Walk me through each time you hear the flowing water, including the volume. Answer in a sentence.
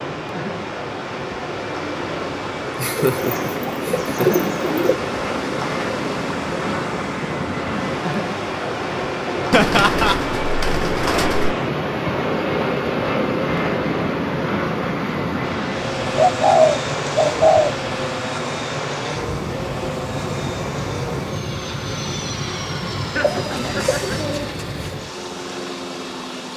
You can hear the flowing water from 0.0 to 26.5 s, at a steady volume.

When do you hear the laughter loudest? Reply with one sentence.
The volume of the laughter peaks at 10 seconds.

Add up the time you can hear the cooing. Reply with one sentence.
You can hear the cooing for 7 seconds altogether.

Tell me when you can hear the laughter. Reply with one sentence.
The laughter can be heard from 2.8 to 4.3 s, from 9.5 to 10.2 s and from 22.9 to 24.2 s.